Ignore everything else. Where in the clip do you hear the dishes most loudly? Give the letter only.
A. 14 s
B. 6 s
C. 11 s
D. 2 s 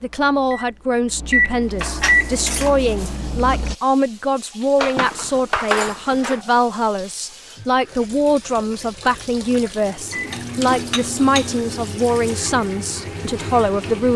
B.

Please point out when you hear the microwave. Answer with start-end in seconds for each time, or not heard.
0.0-3.8, 9.8-11.8.